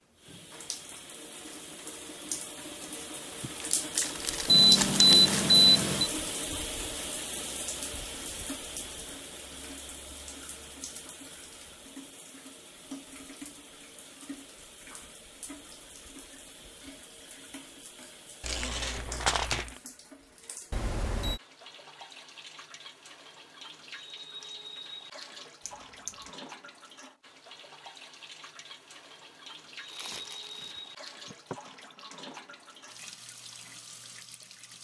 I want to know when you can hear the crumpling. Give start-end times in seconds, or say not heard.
3.4-5.5, 18.4-19.8, 29.9-31.7.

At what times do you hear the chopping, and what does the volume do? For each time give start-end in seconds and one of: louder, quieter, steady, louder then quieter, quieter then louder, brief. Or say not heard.
not heard.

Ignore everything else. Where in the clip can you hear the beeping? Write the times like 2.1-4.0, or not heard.
4.5-6.1, 20.7-21.4, 25.6-26.2.